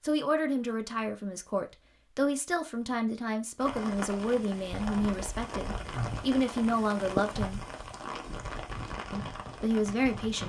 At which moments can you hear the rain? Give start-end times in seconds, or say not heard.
3.6-10.4.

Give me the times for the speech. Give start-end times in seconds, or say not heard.
0.0-7.6, 9.1-10.4.